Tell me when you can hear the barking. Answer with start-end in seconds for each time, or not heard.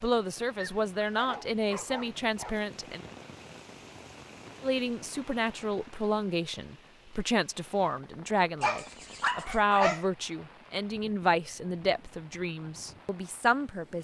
0.6-2.6, 8.6-10.1.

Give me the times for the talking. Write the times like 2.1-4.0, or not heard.
0.0-3.0, 4.6-13.9.